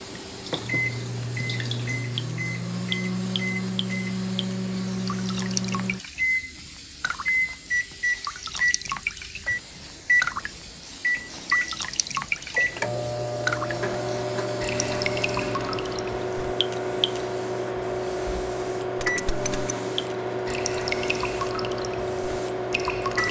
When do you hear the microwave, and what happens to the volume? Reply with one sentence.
The microwave can be heard from 0.0 to 23.2 s, at a steady volume.